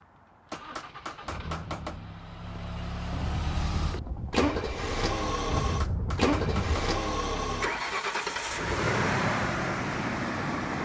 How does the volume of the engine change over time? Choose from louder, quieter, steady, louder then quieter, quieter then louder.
louder.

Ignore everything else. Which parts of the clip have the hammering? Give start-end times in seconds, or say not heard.
0.5-2.0, 5.5-7.0.